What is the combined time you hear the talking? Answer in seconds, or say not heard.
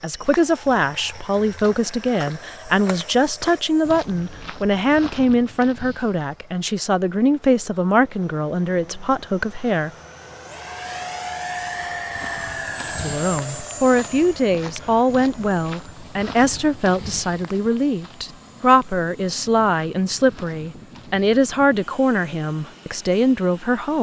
21 s.